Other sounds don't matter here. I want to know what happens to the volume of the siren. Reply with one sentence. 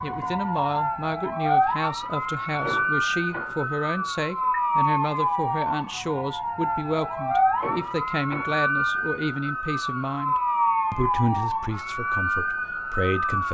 The loudness of the siren stays about the same.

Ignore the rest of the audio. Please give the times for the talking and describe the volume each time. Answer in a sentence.
You can hear the talking from 0.0 to 13.4 s, at a steady volume.